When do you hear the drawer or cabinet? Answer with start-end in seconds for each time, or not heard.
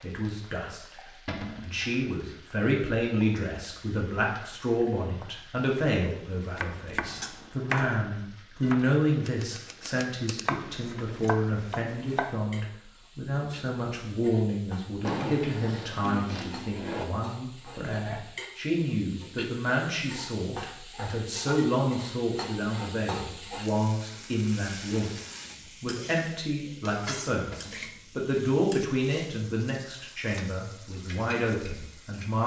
1.2-1.8, 15.0-17.1, 27.5-27.9.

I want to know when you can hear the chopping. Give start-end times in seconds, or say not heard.
6.5-12.4.